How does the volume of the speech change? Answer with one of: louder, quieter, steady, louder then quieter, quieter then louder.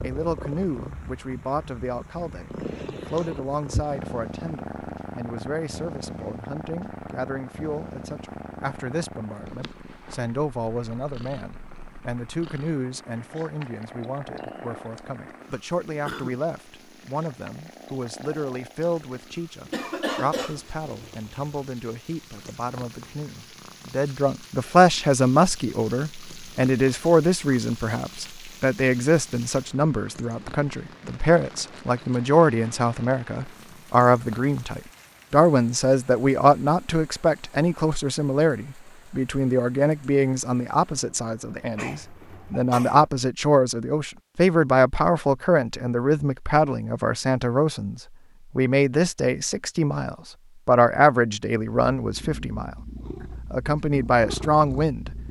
louder.